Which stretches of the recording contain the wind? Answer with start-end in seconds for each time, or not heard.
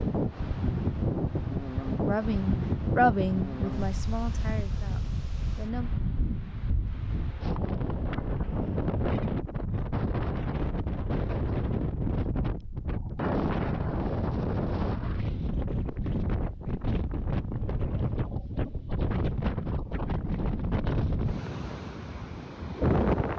0.0-23.3.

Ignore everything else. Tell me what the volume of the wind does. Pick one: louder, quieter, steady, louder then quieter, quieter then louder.
steady.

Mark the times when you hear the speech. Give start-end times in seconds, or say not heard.
2.0-5.9.